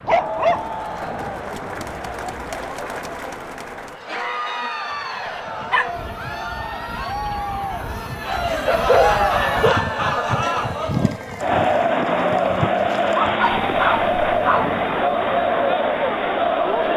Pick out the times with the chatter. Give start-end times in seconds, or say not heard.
0.1-16.9.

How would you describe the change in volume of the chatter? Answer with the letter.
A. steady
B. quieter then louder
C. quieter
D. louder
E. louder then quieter
D.